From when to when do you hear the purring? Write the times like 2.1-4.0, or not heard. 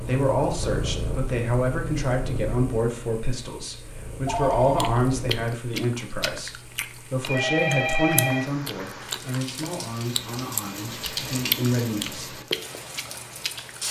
0.0-5.5.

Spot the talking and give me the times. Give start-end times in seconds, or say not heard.
0.0-12.4.